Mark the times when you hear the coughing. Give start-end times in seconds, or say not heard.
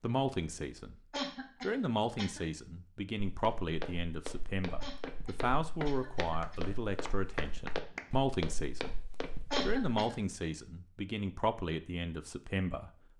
1.1-2.4, 4.8-6.8, 9.5-10.2.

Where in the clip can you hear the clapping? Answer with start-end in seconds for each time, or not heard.
6.4-8.2.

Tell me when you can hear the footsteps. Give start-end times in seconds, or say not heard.
3.3-10.0.